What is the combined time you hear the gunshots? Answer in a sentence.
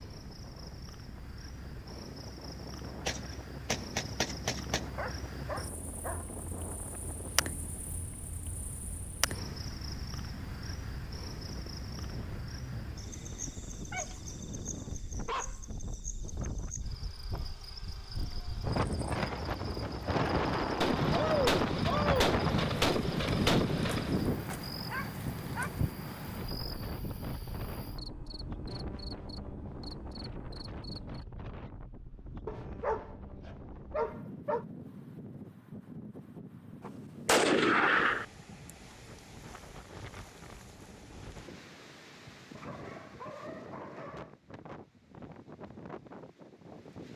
You can hear the gunshots for 7 seconds altogether.